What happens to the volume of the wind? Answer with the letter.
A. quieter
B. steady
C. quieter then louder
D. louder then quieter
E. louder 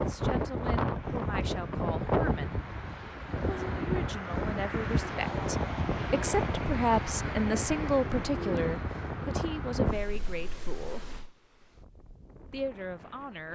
A.